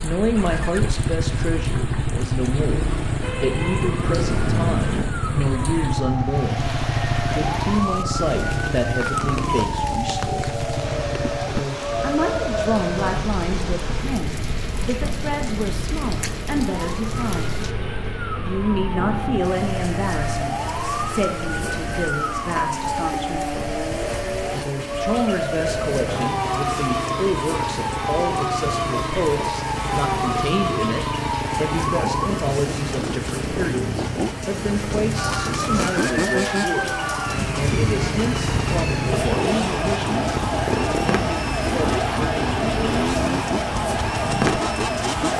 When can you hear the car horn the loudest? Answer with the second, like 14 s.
5 s.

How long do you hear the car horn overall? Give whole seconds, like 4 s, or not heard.
2 s.